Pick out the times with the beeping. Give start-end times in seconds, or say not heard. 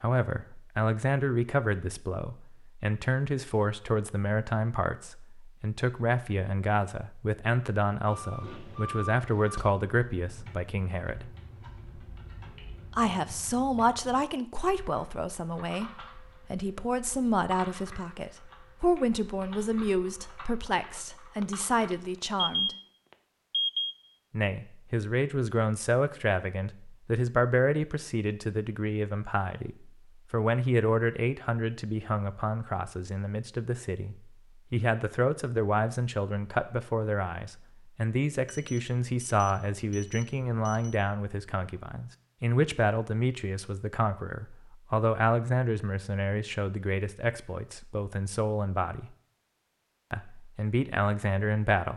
8.1-9.7, 21.4-22.8, 23.5-23.9, 38.5-41.0.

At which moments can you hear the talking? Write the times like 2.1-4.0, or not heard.
0.0-11.3, 12.9-15.9, 16.5-22.8, 24.3-49.1, 50.1-51.9.